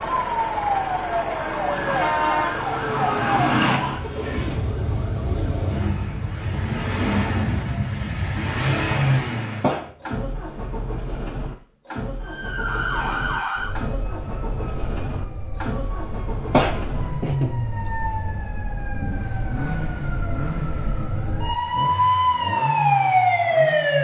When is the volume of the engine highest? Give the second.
9 s.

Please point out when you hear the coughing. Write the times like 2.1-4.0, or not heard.
9.6-10.4, 16.5-17.6.